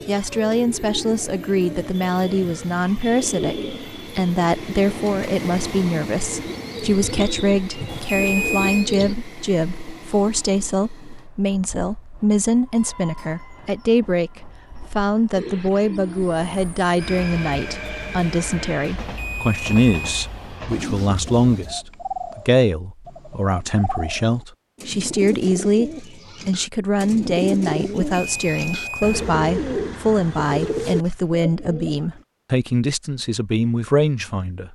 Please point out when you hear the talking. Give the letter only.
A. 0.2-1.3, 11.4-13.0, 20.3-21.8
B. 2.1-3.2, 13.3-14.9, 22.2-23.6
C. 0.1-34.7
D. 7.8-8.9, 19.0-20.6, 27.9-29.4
C.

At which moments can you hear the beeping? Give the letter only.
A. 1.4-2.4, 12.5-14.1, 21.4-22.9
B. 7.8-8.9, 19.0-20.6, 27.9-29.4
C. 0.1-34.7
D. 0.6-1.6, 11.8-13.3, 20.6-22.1
B.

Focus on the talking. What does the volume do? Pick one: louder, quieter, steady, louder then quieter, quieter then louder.
steady.